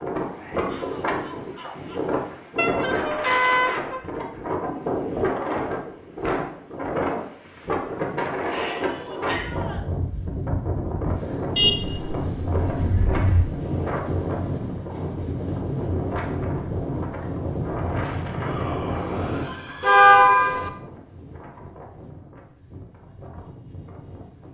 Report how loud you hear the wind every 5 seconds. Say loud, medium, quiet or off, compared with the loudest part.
loud, loud, loud, loud, quiet.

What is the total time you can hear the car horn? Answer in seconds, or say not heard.
4 s.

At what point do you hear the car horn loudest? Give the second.
20 s.